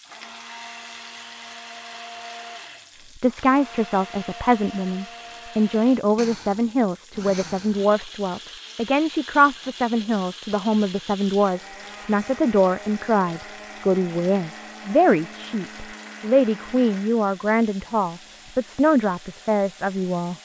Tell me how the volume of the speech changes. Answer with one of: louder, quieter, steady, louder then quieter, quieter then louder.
steady.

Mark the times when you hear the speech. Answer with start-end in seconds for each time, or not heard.
3.2-20.3.